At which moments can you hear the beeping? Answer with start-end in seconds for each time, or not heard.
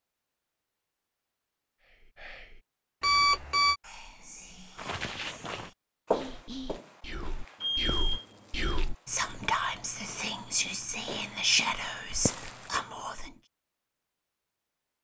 3.0-3.8, 7.6-8.7.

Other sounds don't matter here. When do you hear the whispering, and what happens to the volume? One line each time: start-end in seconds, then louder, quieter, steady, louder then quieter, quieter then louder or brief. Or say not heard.
1.8-13.3 louder.